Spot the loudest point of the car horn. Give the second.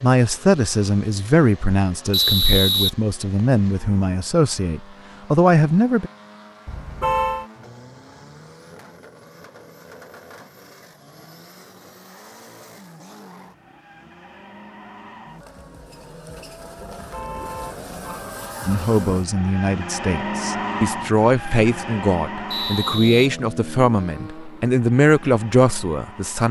7 s.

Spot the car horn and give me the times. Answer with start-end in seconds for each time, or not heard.
6.7-7.5, 16.9-18.3.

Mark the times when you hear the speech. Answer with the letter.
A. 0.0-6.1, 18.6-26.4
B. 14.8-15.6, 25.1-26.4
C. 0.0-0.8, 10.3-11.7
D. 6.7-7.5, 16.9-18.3
A.